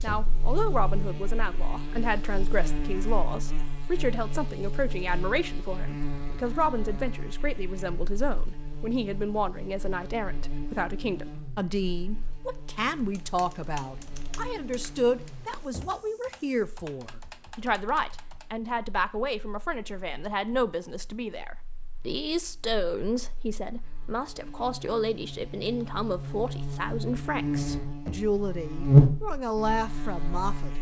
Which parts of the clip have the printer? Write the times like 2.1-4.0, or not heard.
not heard.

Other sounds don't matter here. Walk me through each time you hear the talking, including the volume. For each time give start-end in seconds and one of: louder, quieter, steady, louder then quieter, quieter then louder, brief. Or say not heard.
0.0-30.7 steady.